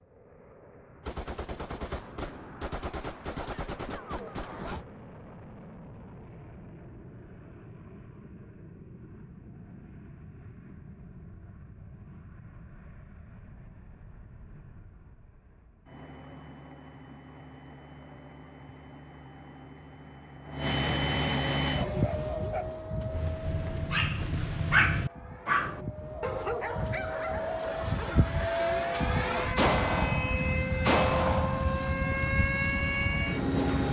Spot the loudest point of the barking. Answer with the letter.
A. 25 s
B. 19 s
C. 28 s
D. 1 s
A.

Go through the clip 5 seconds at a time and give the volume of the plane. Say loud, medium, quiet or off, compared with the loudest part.
quiet, quiet, quiet, quiet, loud, loud, loud.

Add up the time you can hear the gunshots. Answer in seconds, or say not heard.
6 s.